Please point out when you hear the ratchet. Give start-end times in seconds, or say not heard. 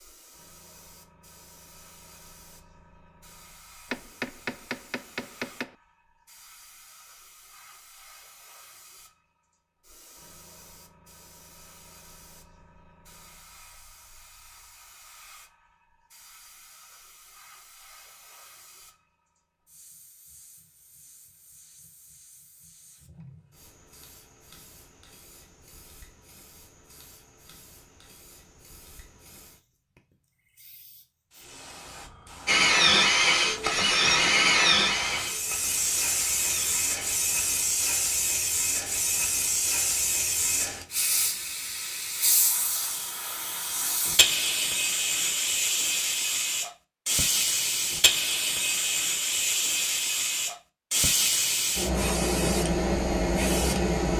not heard.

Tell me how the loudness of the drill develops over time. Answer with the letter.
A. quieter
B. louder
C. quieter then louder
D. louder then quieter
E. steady
A.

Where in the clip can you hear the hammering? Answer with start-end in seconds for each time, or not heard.
3.9-5.8.